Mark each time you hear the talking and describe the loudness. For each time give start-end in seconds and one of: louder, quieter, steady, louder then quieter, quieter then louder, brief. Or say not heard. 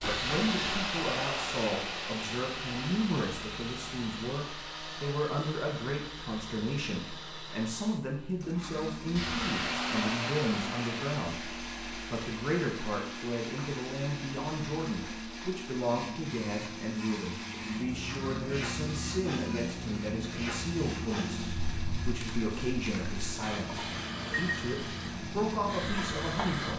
0.0-26.7 steady.